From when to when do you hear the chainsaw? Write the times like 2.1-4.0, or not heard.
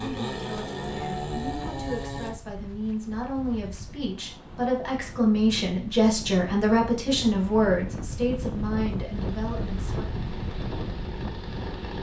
0.0-2.4, 8.9-11.9.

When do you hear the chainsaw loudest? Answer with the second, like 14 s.
1 s.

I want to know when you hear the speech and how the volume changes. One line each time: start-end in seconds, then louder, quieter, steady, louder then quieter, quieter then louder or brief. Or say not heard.
0.0-10.1 louder then quieter.